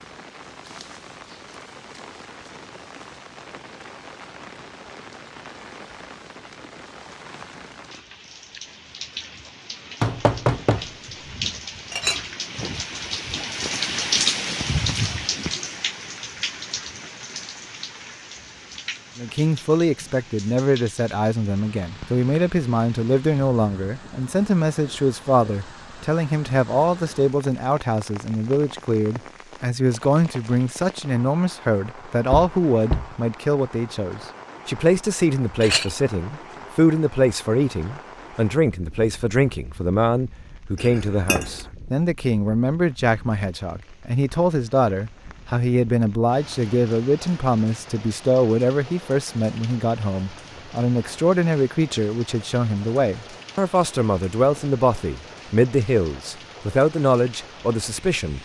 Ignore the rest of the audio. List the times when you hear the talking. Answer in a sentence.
You can hear the talking from 19.1 to 58.4 s.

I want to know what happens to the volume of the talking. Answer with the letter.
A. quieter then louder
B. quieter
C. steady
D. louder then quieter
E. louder
C.